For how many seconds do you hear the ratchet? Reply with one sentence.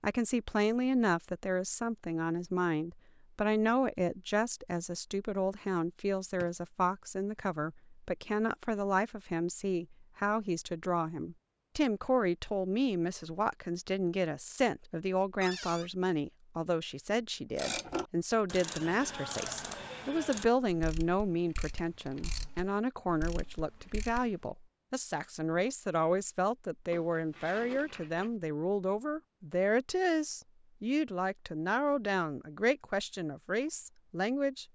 You can hear the ratchet for 7 seconds altogether.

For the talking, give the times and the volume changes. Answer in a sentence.
The talking can be heard from 0.0 to 34.6 s, at a steady volume.